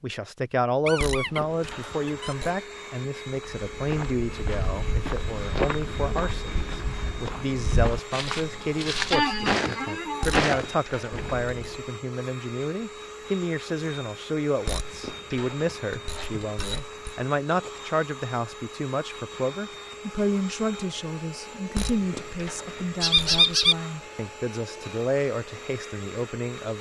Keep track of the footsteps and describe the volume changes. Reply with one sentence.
The volume of the footsteps goes up.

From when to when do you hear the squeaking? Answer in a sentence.
You can hear the squeaking from 0.8 to 2.4 s, from 9.1 to 10.4 s and from 23.0 to 23.8 s.